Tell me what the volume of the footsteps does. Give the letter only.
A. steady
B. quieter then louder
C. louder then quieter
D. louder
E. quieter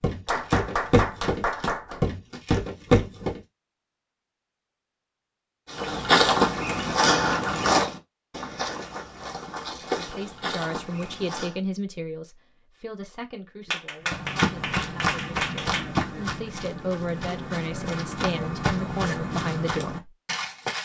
E.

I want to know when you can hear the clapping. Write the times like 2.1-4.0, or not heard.
0.2-2.0, 13.7-16.0.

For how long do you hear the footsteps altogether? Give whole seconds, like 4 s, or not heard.
16 s.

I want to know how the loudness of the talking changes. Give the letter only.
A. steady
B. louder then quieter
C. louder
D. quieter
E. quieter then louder
E.